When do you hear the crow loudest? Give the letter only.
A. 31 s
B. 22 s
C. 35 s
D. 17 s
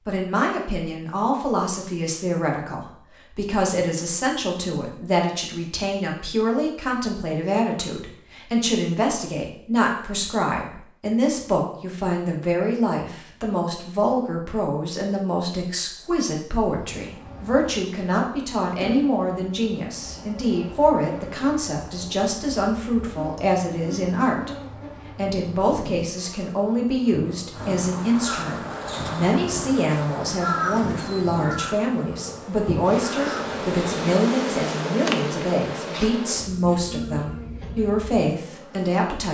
A.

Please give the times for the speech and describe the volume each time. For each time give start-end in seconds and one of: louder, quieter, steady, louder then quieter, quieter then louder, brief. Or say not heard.
0.1-39.2 steady.